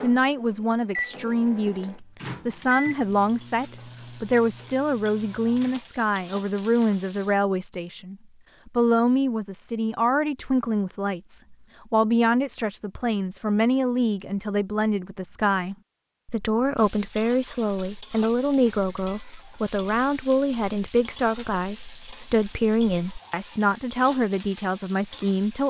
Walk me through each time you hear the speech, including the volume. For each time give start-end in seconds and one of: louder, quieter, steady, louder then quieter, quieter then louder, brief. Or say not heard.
0.0-25.6 steady.